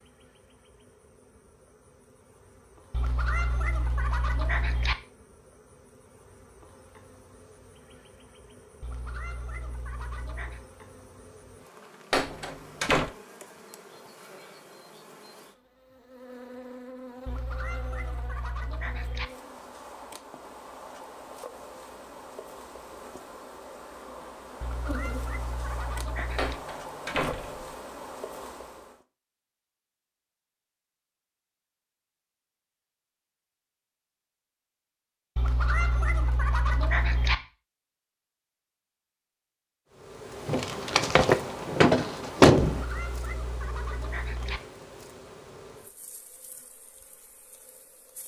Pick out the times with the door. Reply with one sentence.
You can hear the door from 12.1 to 13.1 s, from 26.4 to 27.7 s and from 40.5 to 42.9 s.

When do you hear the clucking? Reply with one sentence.
You can hear the clucking from 2.9 to 5.0 s, from 8.8 to 10.7 s, from 17.2 to 19.3 s, from 24.6 to 26.6 s, from 35.4 to 37.4 s and from 42.6 to 44.6 s.